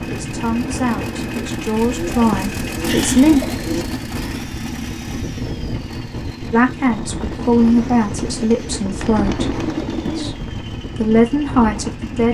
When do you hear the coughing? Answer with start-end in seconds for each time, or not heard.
2.3-3.2.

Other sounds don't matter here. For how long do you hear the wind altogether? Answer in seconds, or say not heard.
12 s.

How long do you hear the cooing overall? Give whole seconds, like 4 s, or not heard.
5 s.